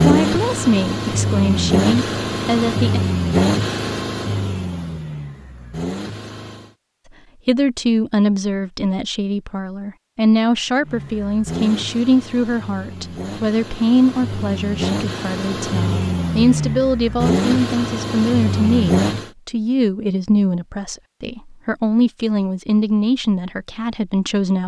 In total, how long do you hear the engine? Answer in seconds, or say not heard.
15 s.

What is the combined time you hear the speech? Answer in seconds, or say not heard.
20 s.